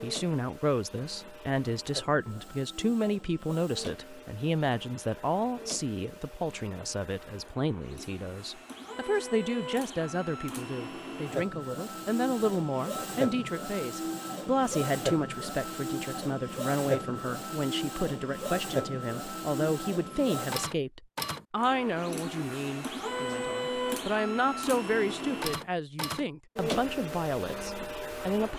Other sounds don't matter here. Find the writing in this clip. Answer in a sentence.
The writing can't be heard in this clip.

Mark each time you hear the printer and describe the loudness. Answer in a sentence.
The printer can be heard from 0.0 to 28.5 s, getting louder.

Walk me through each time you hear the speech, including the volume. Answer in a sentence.
The speech can be heard from 0.0 to 28.5 s, at a steady volume.